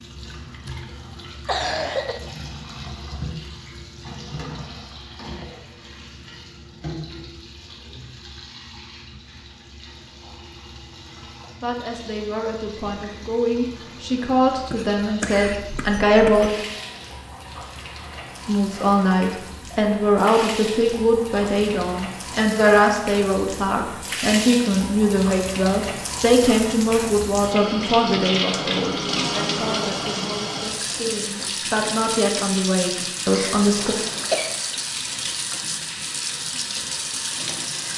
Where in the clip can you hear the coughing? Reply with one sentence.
The coughing can be heard from 0.7 to 2.2 s, from 14.7 to 16.5 s and from 33.3 to 34.5 s.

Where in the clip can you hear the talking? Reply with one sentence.
The talking can be heard from 11.6 to 16.5 s and from 18.4 to 34.0 s.